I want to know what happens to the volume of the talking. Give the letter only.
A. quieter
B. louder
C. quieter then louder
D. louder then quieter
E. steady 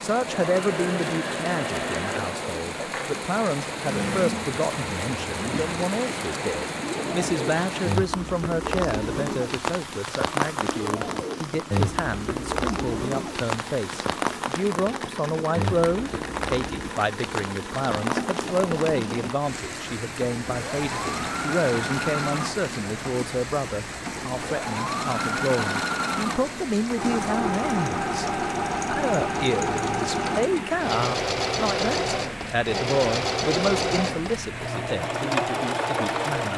E.